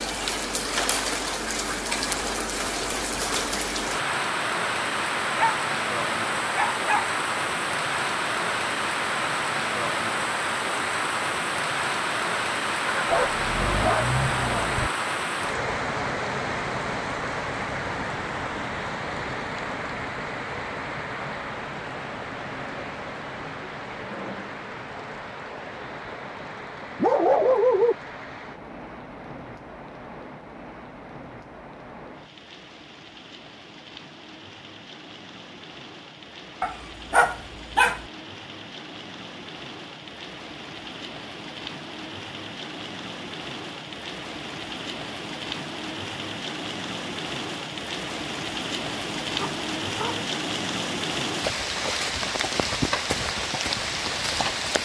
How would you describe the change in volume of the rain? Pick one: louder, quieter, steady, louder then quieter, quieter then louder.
quieter then louder.